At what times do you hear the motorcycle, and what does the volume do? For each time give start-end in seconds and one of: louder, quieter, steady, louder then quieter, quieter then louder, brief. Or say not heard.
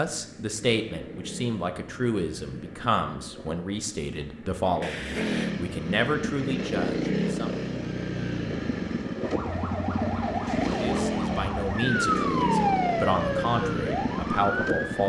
0.0-15.0 louder.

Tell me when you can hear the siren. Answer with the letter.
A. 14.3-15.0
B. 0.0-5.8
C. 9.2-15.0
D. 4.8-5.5
C.